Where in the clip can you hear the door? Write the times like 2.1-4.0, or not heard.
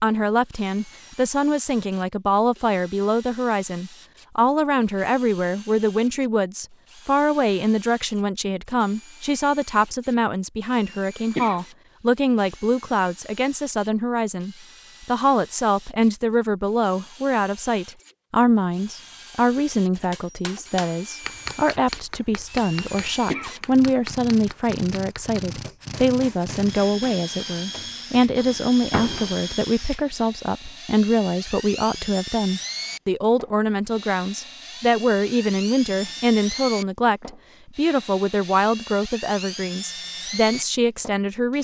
28.4-29.4.